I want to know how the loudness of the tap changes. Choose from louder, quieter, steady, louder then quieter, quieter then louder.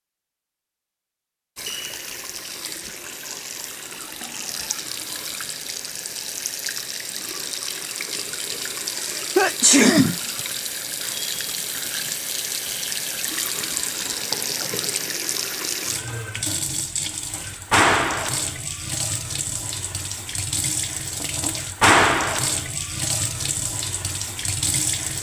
louder.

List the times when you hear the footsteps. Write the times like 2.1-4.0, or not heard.
not heard.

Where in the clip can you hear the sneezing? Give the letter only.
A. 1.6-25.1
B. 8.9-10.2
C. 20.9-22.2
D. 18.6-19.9
B.